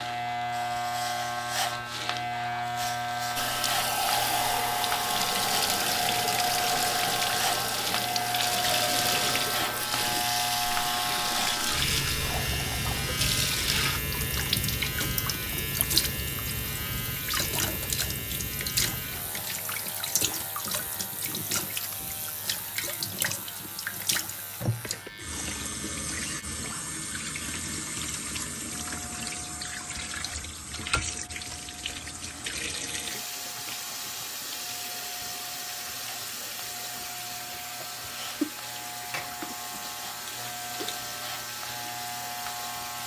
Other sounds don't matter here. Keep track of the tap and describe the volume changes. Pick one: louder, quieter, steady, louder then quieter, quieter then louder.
quieter.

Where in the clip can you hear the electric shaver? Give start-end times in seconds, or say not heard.
0.0-43.0.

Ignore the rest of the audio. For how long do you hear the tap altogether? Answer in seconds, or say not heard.
40 s.